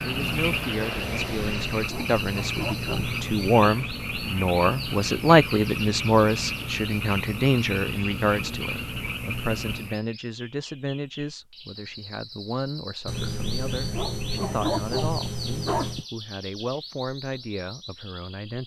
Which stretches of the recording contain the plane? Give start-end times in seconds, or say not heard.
0.0-1.8.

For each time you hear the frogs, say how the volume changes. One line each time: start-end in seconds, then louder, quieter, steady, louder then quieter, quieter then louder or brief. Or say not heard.
0.0-10.0 steady.